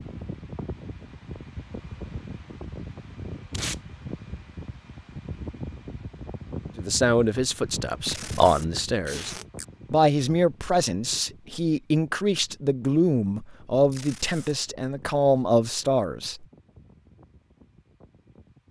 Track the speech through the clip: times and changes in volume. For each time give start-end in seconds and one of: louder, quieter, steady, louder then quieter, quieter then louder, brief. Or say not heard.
6.8-16.4 steady.